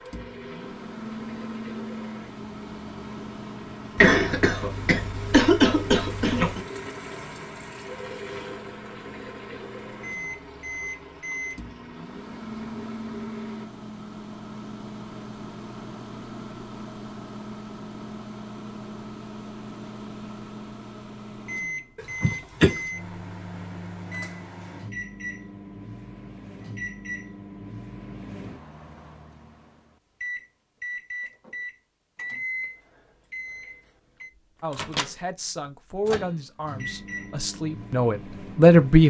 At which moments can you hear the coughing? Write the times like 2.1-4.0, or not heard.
4.0-6.6, 21.9-22.8.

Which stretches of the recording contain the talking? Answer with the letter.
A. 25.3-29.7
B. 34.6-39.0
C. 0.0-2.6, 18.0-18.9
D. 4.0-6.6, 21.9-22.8
B.